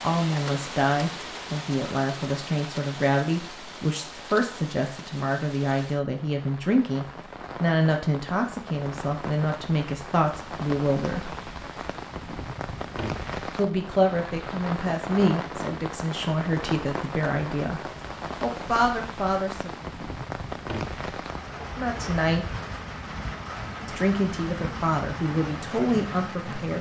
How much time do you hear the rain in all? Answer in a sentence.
You can hear the rain for 27 seconds altogether.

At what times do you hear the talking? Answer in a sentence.
You can hear the talking from 0.0 to 11.3 s, from 13.6 to 17.8 s, from 18.4 to 19.7 s, from 21.8 to 22.4 s and from 23.9 to 26.7 s.